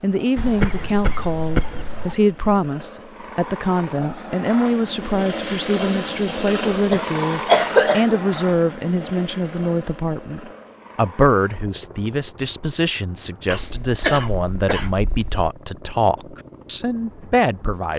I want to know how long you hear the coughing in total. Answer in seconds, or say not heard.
5 s.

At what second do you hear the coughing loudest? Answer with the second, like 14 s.
8 s.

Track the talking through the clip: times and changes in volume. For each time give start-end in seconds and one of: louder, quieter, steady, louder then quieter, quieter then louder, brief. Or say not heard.
0.0-17.9 steady.